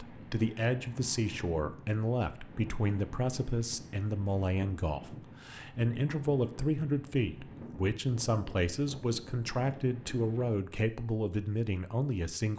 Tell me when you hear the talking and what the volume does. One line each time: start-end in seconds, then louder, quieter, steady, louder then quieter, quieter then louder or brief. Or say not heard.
0.0-12.5 steady.